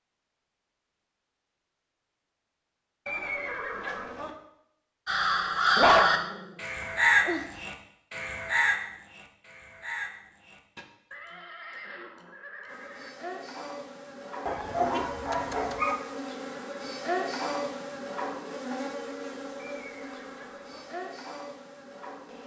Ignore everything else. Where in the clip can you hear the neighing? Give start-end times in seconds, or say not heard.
3.0-4.3, 11.1-13.1, 19.6-20.9.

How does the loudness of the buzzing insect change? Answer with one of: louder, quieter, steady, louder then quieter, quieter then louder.
louder then quieter.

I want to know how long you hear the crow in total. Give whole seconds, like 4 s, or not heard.
6 s.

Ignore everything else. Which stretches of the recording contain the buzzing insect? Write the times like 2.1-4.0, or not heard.
12.7-22.4.